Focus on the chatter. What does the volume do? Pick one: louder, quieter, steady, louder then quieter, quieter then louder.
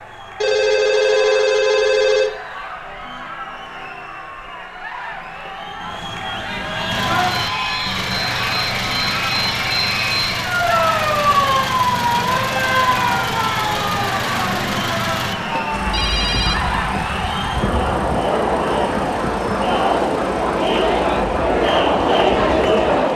louder.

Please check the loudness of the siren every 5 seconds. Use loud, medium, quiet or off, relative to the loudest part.
off, medium, loud, medium, medium.